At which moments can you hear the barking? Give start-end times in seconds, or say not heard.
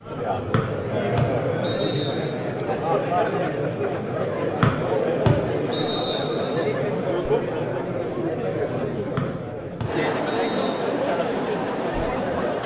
not heard.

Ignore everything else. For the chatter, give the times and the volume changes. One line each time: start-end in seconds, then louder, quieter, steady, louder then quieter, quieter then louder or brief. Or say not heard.
0.0-12.6 steady.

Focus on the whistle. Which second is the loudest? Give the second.
5 s.